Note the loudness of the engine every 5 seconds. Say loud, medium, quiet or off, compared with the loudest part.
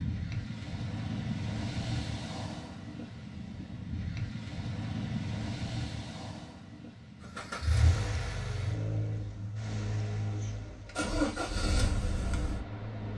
off, loud, loud.